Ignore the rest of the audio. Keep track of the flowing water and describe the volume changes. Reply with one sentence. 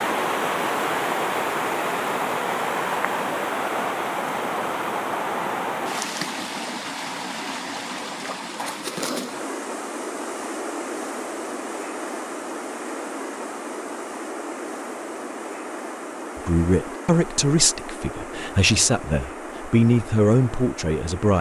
The volume of the flowing water goes down.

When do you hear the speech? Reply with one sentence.
You can hear the speech from 16.4 to 21.3 s.